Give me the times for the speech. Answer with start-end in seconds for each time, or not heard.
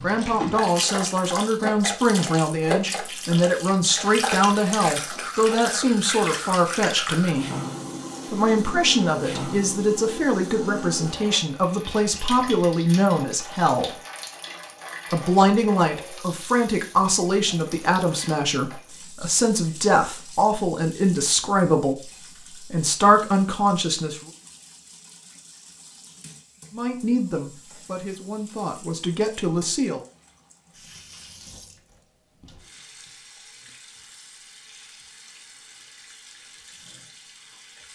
0.0-7.5, 8.3-13.9, 15.1-24.3, 26.7-30.0.